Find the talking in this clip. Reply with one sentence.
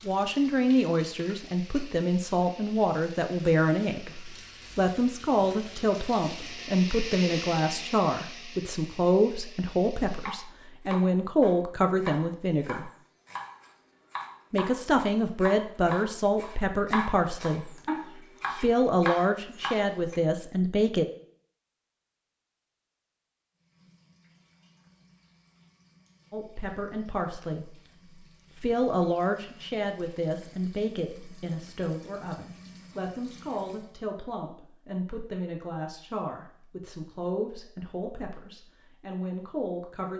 The talking can be heard from 0.1 to 12.9 s, from 14.5 to 17.8 s, from 18.6 to 21.1 s, from 26.3 to 27.8 s and from 28.6 to 40.1 s.